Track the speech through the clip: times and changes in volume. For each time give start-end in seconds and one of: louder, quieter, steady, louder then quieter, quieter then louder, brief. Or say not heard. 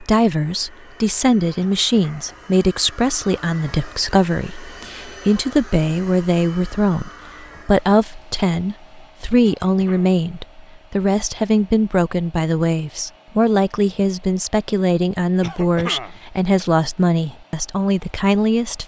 0.0-18.8 steady.